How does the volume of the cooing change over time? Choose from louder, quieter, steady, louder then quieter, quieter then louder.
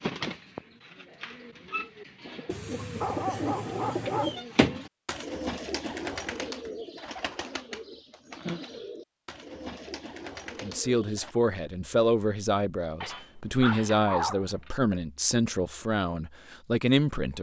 louder then quieter.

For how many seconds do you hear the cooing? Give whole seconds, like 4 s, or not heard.
11 s.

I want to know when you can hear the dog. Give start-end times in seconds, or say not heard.
2.5-4.4, 13.0-14.7.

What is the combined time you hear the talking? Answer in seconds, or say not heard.
7 s.